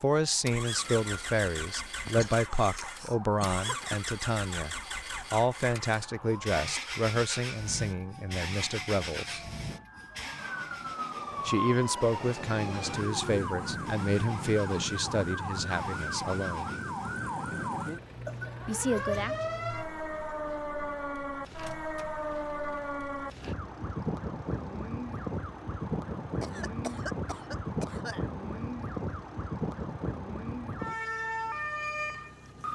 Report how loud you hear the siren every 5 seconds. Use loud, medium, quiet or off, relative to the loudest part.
quiet, quiet, loud, loud, loud, loud, loud.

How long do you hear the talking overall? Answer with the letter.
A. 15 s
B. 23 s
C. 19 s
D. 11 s
A.